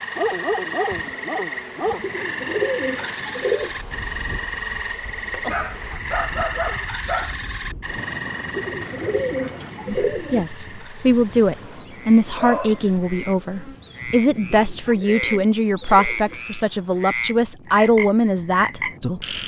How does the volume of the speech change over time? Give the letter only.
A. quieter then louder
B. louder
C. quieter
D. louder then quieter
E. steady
E.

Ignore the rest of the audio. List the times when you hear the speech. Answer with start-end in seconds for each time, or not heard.
9.8-19.4.